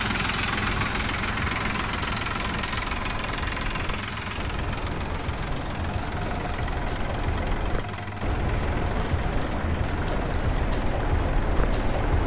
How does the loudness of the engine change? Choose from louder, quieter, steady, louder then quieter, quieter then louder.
quieter.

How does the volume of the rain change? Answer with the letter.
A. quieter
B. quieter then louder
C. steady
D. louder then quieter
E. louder
E.